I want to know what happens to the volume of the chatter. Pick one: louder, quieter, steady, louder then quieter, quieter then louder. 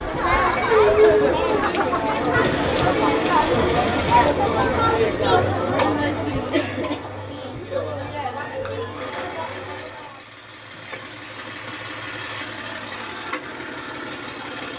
quieter.